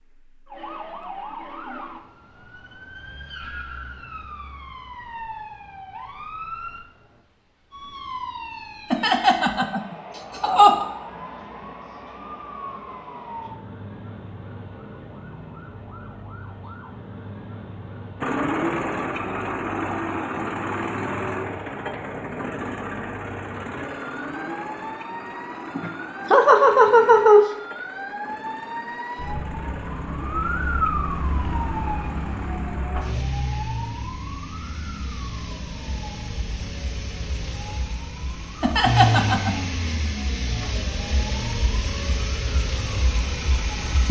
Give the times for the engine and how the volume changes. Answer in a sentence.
You can hear the engine from 18.2 to 44.0 s, getting quieter then louder.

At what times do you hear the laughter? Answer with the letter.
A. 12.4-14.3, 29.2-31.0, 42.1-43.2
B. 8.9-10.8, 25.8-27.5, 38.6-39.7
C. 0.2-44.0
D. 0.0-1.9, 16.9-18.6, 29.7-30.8
B.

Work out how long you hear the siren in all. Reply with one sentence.
You can hear the siren for 44 seconds altogether.